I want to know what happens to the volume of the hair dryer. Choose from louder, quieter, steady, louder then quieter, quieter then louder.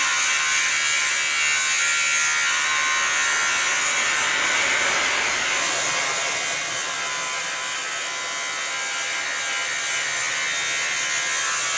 louder then quieter.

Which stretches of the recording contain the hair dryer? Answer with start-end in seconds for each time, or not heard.
0.0-11.7.